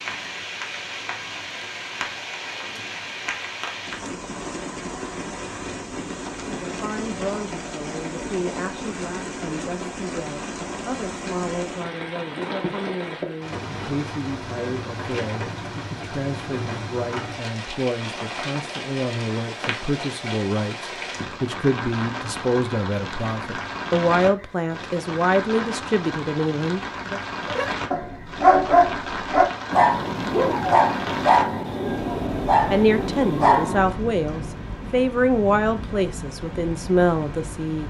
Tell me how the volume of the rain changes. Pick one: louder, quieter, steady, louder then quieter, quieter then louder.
steady.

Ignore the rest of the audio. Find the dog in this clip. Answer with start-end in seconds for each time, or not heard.
27.4-34.0.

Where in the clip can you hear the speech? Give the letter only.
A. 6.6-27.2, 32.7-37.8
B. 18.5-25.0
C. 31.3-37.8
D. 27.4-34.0
A.